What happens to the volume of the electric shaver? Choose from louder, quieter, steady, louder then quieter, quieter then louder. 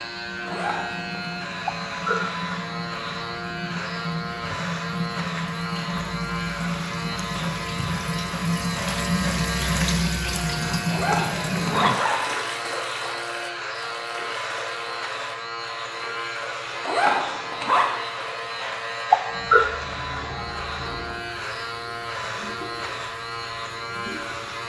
steady.